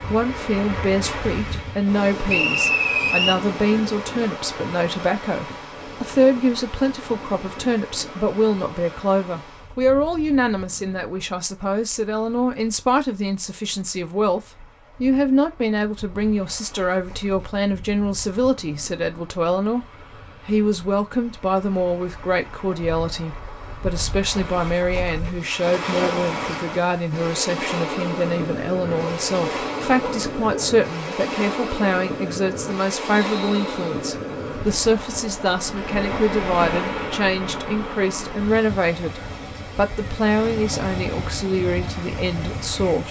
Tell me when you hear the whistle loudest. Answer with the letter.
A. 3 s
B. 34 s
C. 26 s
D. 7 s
A.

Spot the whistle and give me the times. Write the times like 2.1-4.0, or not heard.
2.2-3.4, 33.1-33.8.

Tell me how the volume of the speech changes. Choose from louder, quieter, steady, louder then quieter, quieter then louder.
steady.